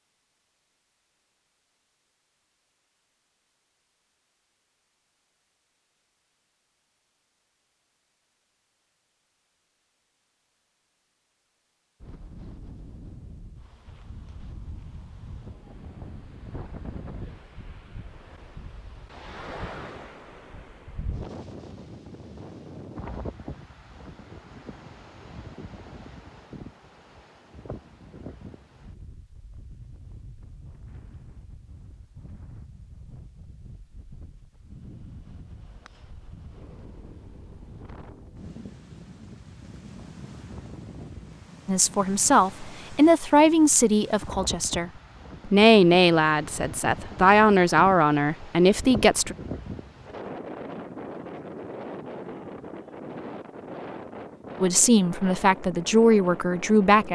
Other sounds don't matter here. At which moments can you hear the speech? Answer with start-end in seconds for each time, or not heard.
41.6-49.4, 54.6-57.1.